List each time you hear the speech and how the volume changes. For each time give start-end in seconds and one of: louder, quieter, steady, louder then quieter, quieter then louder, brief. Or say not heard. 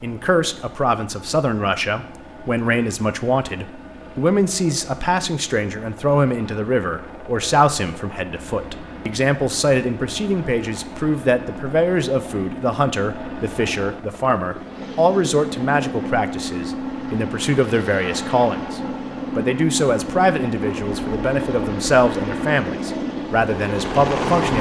0.0-24.5 steady.